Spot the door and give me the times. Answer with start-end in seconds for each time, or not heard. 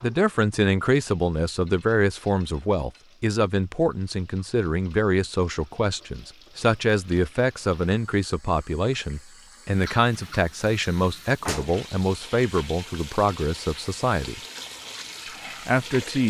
11.4-11.9.